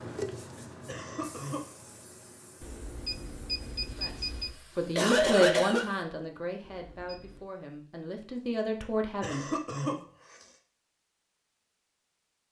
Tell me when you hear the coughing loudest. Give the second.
5 s.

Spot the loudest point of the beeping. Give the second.
4 s.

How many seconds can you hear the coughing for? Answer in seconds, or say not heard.
3 s.